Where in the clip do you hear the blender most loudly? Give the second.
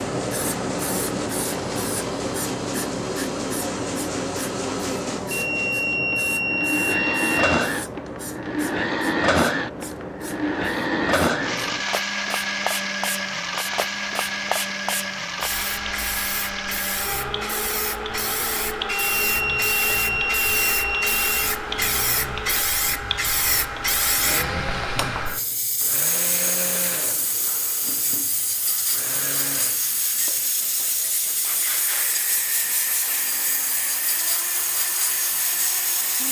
9 s.